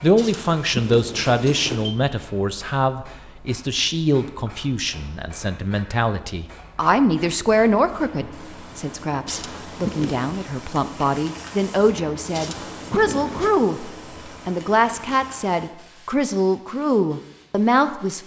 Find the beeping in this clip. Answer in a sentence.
The beeping can be heard from 0.1 to 1.9 s, from 9.2 to 10.3 s and from 12.3 to 13.5 s.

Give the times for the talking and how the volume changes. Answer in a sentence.
You can hear the talking from 0.0 to 18.2 s, at a steady volume.